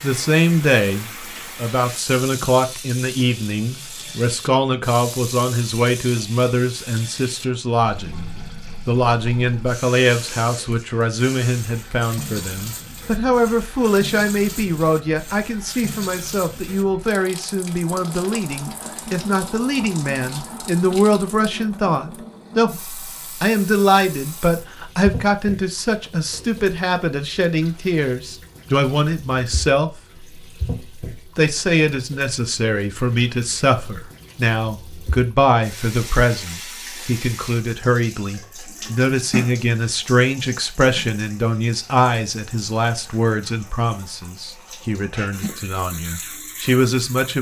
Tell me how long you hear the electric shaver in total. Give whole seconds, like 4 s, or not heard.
not heard.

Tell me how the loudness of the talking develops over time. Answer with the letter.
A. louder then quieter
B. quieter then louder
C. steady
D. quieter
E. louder
C.